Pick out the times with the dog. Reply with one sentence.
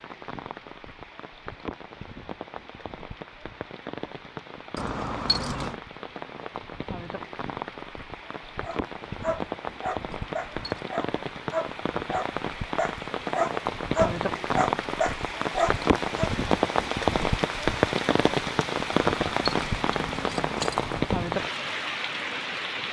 The dog can be heard from 8.6 to 16.3 s.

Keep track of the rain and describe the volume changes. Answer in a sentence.
The volume of the rain goes up.